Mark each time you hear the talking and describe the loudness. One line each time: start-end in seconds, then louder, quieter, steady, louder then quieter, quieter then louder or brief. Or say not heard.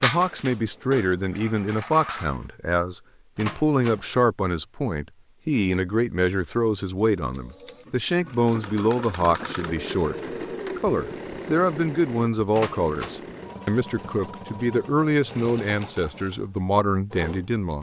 0.0-17.7 steady.